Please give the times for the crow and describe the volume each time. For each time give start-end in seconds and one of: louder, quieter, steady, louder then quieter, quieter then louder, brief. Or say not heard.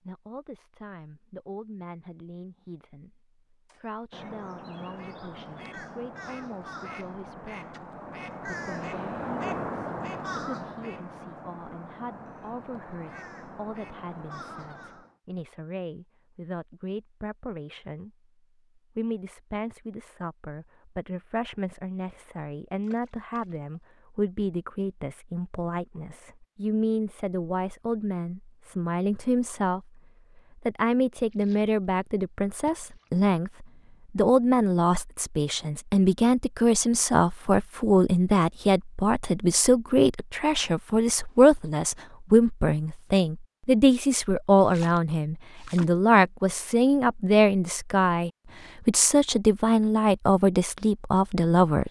3.6-15.2 louder then quieter.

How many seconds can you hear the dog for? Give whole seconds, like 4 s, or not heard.
not heard.